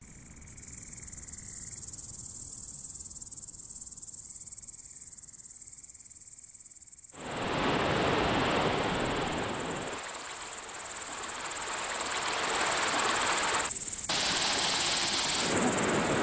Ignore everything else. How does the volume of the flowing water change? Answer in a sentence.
The volume of the flowing water goes down, then up.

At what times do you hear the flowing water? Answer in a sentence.
You can hear the flowing water from 7.2 to 16.1 s.